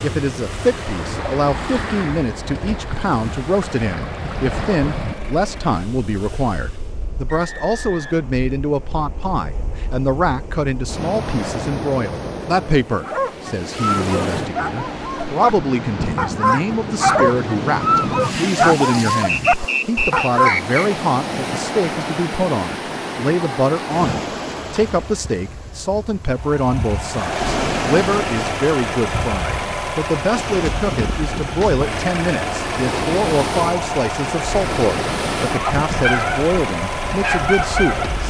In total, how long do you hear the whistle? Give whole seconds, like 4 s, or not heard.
3 s.